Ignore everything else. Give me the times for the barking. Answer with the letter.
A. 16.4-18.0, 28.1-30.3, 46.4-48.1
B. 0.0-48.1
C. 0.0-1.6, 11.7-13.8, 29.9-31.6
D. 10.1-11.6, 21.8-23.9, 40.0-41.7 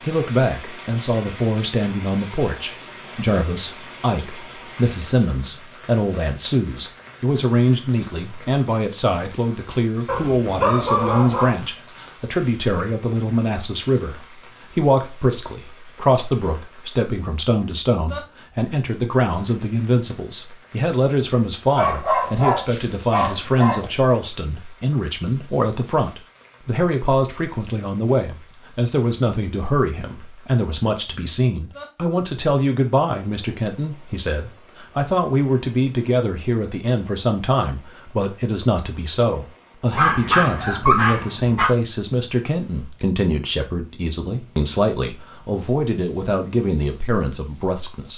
D.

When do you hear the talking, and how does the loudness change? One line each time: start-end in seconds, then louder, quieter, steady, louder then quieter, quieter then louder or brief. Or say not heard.
0.0-48.1 steady.